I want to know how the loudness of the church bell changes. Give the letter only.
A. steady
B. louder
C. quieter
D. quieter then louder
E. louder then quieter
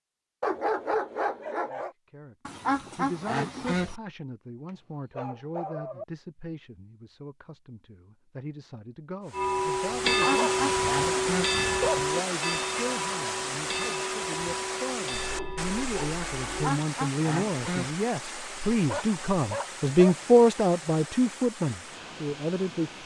C.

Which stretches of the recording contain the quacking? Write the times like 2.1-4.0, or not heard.
2.5-4.0, 10.1-11.6, 16.4-17.9.